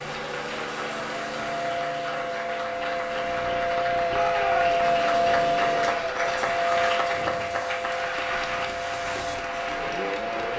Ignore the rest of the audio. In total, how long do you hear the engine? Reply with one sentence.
You can hear the engine for 9 seconds altogether.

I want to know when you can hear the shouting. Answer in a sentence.
The shouting can be heard from 4.0 to 4.8 s.